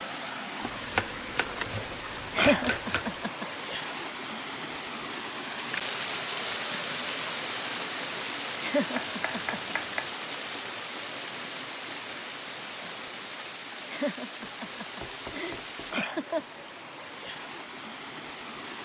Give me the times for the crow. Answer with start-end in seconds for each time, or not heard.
not heard.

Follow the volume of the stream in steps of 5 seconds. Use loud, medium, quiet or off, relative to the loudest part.
loud, loud, medium, medium.